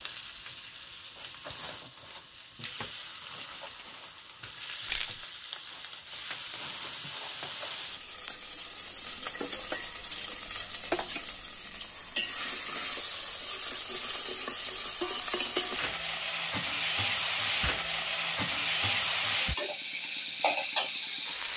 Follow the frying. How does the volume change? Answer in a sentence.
The volume of the frying goes up.